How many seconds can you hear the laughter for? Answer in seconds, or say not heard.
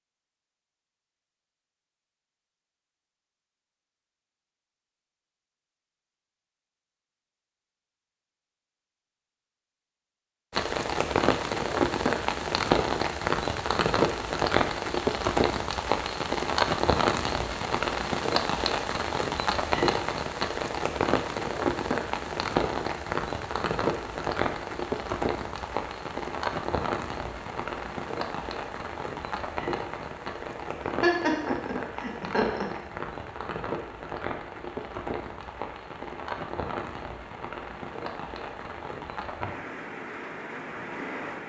2 s.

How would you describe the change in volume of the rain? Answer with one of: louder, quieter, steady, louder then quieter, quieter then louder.
quieter.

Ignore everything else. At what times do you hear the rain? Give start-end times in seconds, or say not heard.
10.5-41.4.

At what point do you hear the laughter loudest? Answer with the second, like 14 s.
31 s.